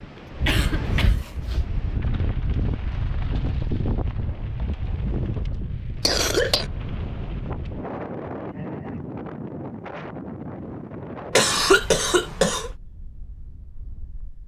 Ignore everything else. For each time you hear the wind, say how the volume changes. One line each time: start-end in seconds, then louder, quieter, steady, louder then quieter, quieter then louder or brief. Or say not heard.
0.0-14.4 quieter.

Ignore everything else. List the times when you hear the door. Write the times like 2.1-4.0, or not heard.
not heard.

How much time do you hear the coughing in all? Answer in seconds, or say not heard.
3 s.